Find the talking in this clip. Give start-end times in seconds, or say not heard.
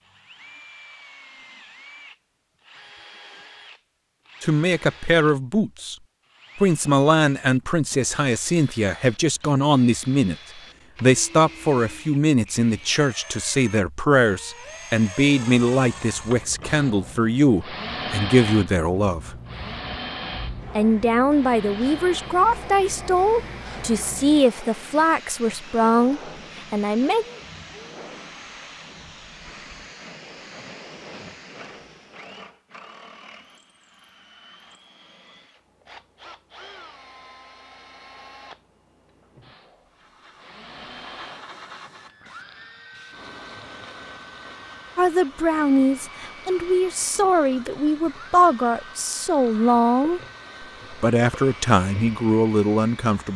4.4-6.0, 6.5-10.3, 11.0-19.4, 20.8-27.2, 45.0-50.2, 50.9-53.3.